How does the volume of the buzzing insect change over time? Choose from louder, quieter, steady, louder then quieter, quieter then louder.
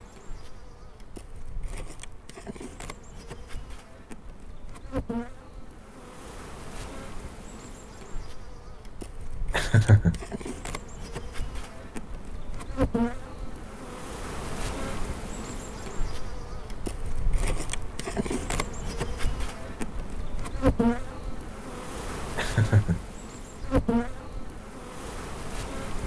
louder.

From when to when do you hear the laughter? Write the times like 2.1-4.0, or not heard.
9.5-10.2, 22.4-23.1.